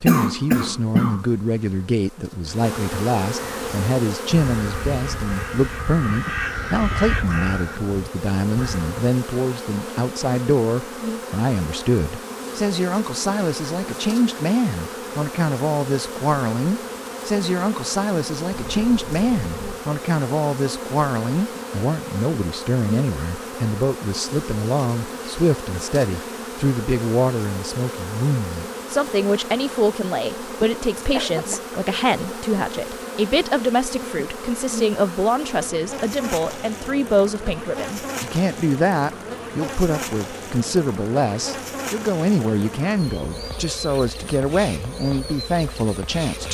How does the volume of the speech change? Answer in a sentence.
The volume of the speech stays about the same.